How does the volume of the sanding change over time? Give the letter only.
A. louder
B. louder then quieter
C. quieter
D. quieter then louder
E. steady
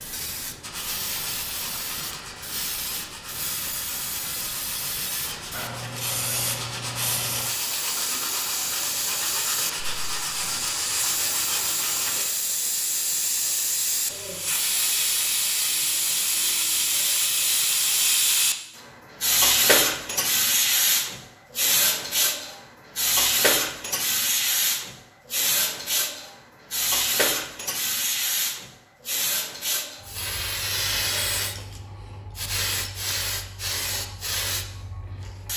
A.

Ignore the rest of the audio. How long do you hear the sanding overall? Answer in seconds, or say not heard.
12 s.